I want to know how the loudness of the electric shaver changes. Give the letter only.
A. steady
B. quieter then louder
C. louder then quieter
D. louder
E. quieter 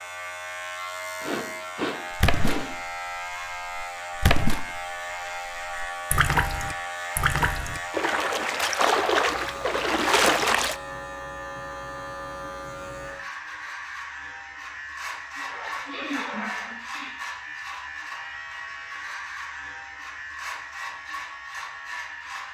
A.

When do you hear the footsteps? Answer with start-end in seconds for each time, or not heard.
not heard.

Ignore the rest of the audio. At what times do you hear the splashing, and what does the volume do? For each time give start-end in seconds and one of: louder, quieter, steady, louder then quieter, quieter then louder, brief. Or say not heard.
2.1-10.8 louder.